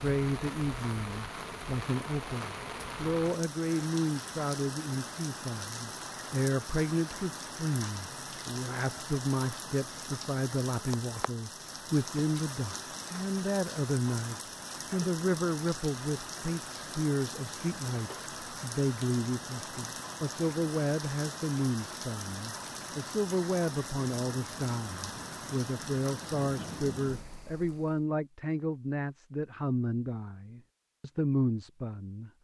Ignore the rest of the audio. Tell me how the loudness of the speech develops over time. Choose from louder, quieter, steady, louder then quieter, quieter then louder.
steady.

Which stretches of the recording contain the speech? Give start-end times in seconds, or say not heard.
0.0-32.3.